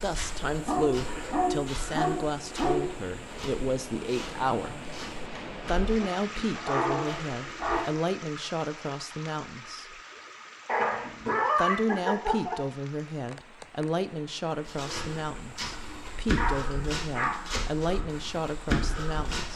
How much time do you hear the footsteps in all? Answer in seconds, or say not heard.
13 s.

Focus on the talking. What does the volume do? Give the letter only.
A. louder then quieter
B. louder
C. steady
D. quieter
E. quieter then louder
C.